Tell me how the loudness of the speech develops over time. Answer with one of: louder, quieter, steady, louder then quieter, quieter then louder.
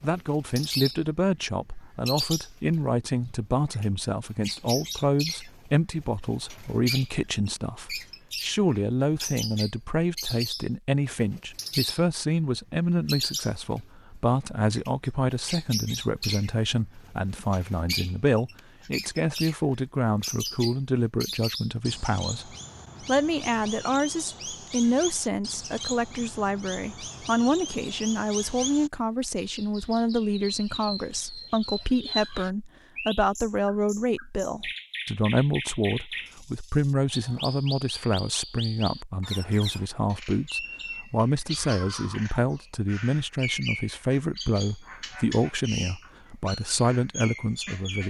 steady.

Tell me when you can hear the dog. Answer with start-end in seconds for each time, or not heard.
not heard.